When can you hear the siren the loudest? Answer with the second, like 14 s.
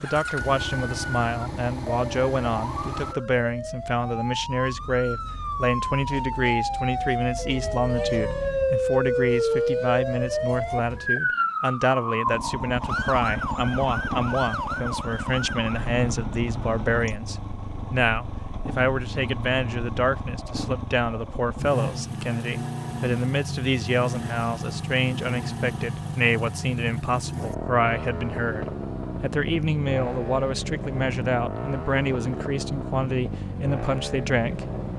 9 s.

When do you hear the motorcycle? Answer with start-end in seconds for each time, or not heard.
0.0-3.1, 12.2-34.9.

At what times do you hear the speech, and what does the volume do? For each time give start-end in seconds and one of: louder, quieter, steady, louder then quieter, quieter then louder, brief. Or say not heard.
0.0-34.7 steady.